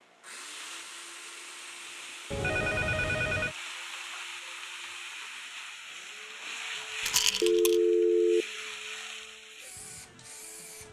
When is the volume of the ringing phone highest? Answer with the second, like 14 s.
8 s.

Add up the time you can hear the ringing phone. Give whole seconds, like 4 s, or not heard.
2 s.